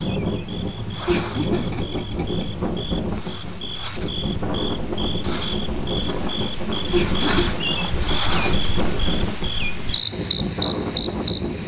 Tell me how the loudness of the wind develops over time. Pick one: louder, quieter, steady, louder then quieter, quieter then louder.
steady.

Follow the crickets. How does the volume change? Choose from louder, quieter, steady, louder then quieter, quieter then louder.
louder.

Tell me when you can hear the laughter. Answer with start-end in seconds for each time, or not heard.
1.1-2.5, 6.9-7.6.